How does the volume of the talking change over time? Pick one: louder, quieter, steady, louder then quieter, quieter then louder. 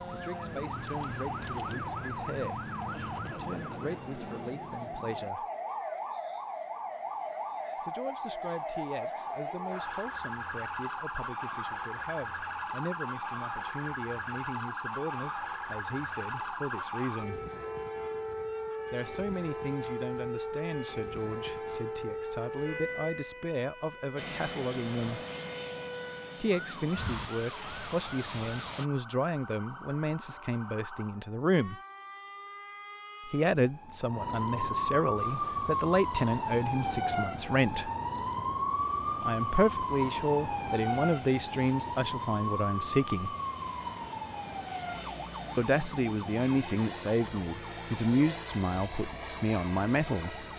louder.